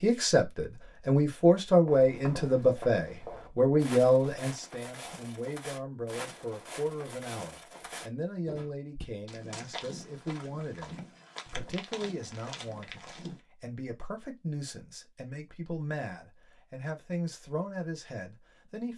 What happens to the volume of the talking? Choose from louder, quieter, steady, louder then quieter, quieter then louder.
quieter.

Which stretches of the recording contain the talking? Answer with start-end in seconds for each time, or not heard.
0.0-18.9.